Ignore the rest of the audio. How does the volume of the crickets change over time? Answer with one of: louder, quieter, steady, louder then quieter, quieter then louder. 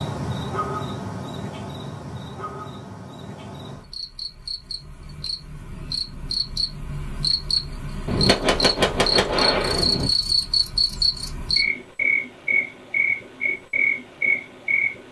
louder.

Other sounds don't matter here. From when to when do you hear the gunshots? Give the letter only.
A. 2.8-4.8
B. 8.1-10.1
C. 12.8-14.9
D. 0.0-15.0
B.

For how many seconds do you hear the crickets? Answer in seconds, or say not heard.
15 s.